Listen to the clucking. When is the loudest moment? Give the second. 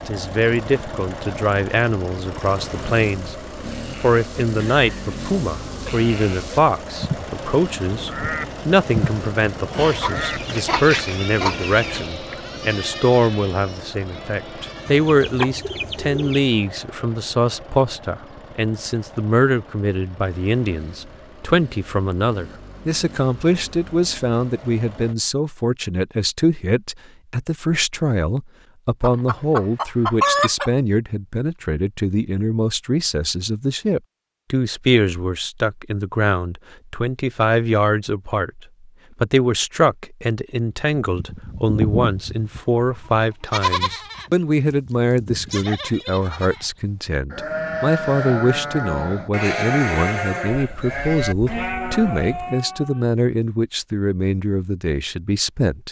30 s.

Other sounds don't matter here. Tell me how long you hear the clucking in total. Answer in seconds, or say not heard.
8 s.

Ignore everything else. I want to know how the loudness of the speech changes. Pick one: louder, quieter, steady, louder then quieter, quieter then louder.
steady.